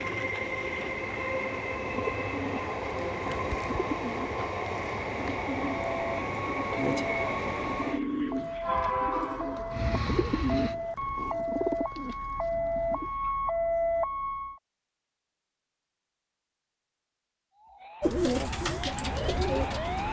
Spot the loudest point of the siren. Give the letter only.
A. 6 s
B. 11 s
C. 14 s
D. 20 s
C.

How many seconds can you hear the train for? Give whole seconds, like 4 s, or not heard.
11 s.